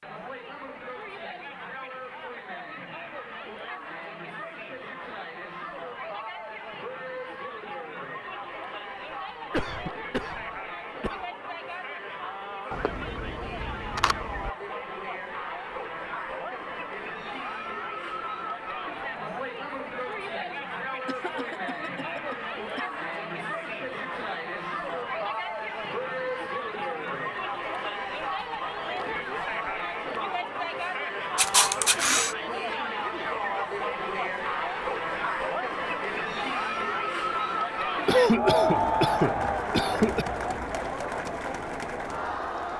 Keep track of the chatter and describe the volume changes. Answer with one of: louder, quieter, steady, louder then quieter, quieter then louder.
louder.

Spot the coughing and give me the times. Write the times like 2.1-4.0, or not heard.
9.4-11.2, 21.1-22.9, 38.0-40.2.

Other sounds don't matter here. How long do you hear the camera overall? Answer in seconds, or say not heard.
3 s.